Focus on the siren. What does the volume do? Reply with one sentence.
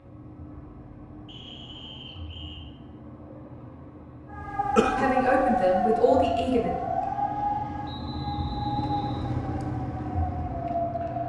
The volume of the siren goes down.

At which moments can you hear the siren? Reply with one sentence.
The siren can be heard from 4.3 to 11.2 s.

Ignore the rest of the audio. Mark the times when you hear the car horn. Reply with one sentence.
You can't hear the car horn here.